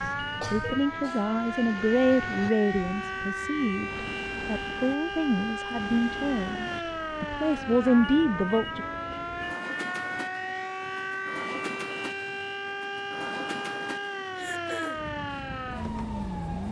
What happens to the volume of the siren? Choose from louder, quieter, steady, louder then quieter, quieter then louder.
steady.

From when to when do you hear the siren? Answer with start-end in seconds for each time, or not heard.
0.0-16.6.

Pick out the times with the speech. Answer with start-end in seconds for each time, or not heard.
0.0-8.8.